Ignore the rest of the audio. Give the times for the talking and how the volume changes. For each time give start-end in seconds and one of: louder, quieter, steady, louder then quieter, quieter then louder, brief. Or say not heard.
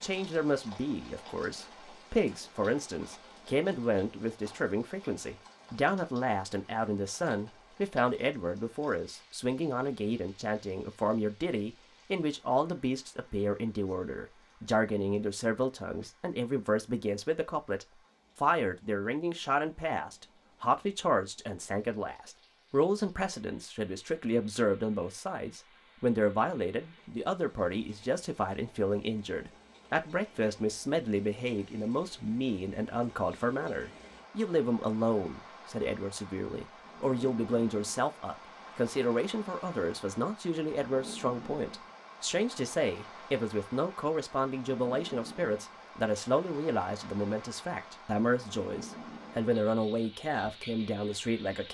0.0-51.6 steady.